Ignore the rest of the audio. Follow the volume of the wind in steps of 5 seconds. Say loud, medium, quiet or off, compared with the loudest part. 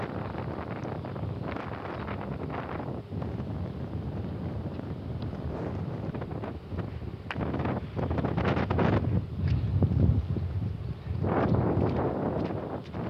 medium, loud, loud.